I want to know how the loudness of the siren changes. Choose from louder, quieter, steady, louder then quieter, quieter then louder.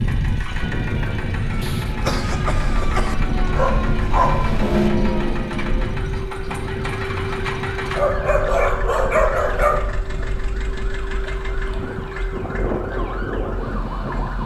louder then quieter.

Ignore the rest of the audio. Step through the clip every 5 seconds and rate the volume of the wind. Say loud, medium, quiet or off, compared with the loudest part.
loud, medium, loud.